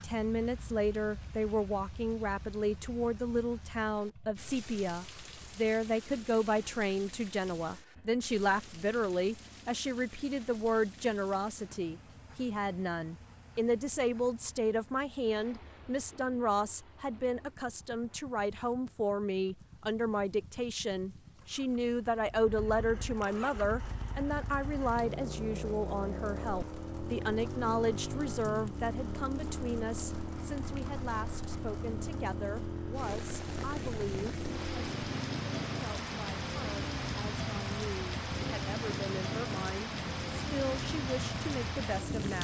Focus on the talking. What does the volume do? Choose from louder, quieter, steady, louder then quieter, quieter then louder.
quieter.